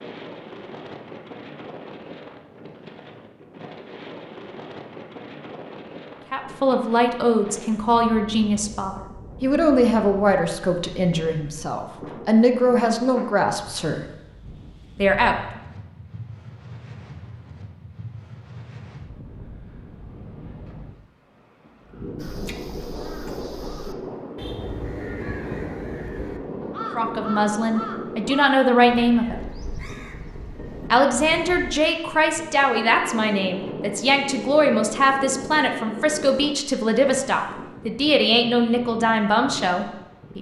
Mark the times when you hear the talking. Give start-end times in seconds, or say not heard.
6.3-14.1, 14.9-15.3, 26.9-29.4, 30.9-40.3.